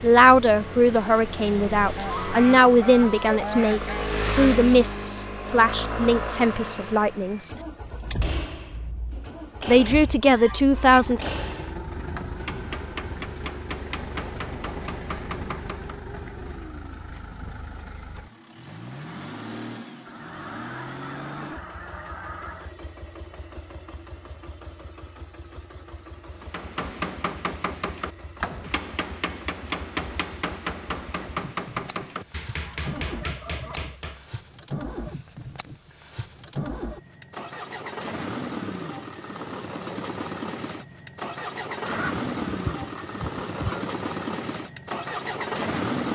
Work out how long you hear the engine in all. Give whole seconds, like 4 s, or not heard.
46 s.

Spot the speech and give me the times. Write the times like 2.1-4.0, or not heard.
0.0-7.5, 9.7-11.2.